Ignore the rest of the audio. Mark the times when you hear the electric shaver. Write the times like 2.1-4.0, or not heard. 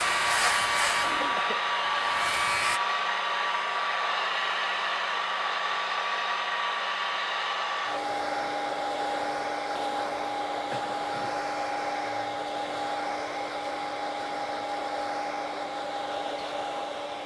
0.0-2.8.